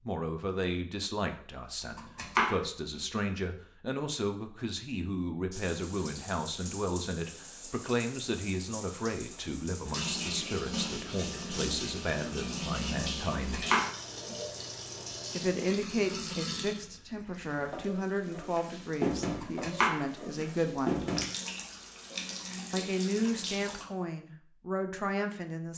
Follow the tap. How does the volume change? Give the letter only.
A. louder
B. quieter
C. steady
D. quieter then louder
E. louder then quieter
A.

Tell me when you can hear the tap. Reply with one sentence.
The tap can be heard from 5.5 to 23.9 s.